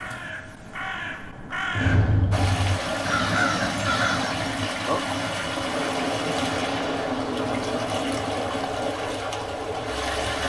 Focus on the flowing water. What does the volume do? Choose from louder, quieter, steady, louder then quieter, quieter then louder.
steady.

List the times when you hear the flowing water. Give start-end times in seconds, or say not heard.
2.3-10.4.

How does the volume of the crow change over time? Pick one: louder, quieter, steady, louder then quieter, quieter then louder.
louder.